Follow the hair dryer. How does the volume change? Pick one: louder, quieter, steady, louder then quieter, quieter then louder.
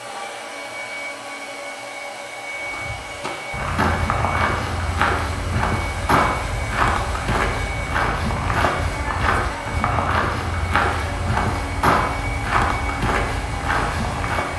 steady.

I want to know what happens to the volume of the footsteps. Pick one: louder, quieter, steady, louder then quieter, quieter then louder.
steady.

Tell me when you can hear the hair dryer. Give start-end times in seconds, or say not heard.
0.0-14.5.